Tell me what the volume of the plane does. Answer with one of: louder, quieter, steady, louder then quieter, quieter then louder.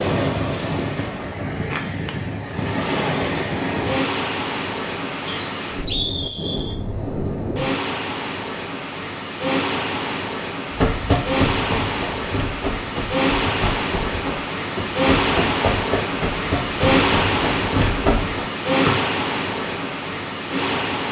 quieter then louder.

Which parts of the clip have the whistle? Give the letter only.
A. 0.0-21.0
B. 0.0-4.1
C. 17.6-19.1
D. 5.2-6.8
D.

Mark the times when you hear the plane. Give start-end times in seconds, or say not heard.
0.0-4.1.